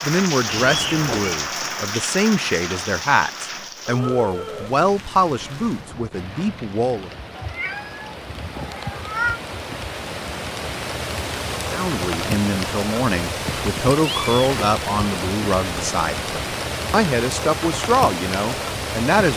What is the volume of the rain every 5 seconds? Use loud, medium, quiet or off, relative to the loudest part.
loud, medium, loud, loud.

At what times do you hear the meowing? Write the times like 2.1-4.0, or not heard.
0.5-1.4, 7.3-9.4, 13.9-14.3.